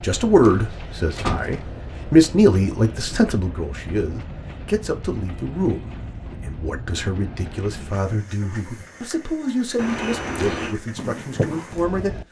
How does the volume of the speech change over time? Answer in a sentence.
The loudness of the speech goes down.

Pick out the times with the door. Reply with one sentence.
The door can be heard from 0.5 to 1.8 s and from 9.8 to 10.8 s.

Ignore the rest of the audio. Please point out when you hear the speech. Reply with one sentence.
You can hear the speech from 0.0 to 12.1 s.